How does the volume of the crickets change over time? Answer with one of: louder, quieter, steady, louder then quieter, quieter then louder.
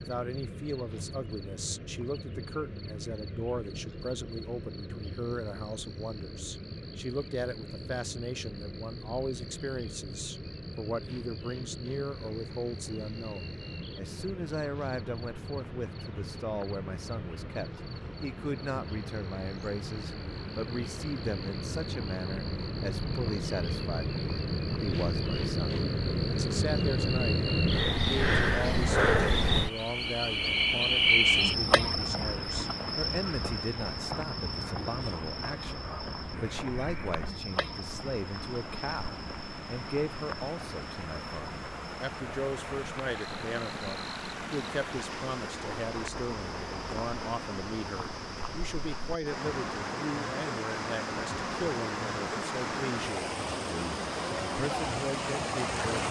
louder then quieter.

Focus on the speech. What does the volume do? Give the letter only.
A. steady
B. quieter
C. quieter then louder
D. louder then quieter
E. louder
A.